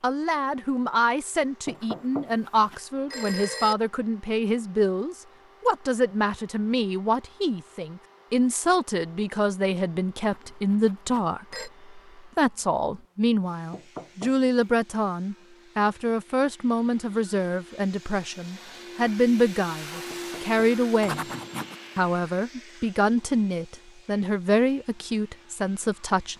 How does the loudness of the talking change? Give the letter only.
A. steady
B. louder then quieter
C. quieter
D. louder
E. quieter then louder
A.